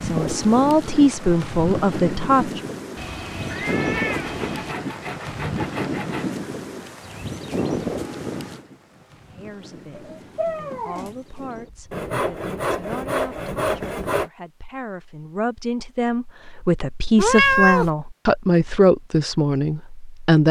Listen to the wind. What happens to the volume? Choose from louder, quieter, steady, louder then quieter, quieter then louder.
quieter.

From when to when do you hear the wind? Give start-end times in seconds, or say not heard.
0.0-12.1.